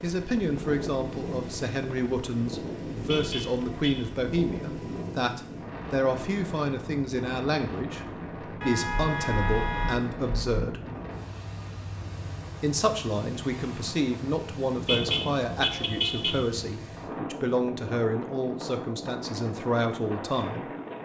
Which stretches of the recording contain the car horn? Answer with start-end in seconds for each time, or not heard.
3.0-4.0, 8.6-10.6, 14.8-16.4.